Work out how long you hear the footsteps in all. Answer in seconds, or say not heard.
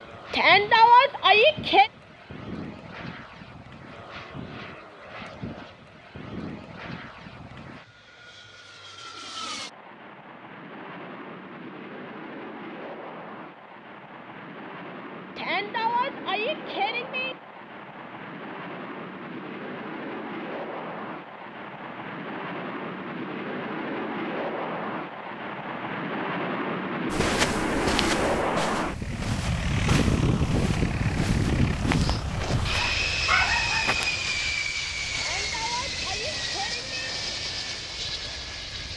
6 s.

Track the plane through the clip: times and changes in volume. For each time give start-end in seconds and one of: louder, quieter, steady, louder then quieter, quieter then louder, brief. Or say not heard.
0.0-38.9 louder.